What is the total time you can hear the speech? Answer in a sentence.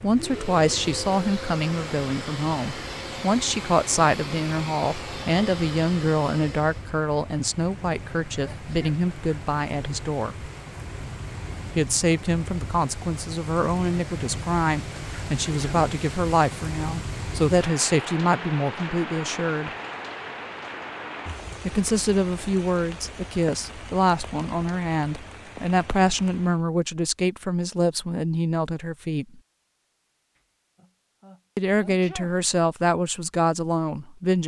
The speech can be heard for 29 seconds in total.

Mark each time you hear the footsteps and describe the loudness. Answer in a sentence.
The footsteps can't be heard in this clip.